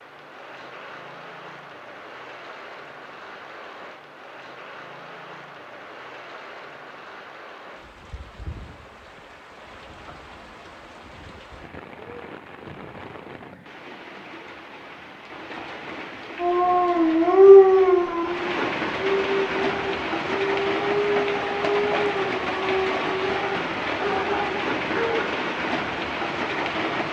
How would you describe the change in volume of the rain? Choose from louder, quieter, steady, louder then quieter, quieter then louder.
louder.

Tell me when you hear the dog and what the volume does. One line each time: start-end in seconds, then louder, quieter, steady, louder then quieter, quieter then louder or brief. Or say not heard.
16.4-25.4 quieter.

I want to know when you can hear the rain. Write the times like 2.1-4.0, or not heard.
0.0-27.0.